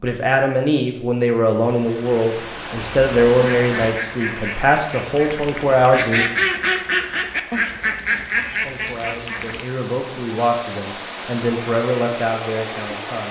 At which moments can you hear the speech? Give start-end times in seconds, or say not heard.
0.0-6.2, 8.6-13.2.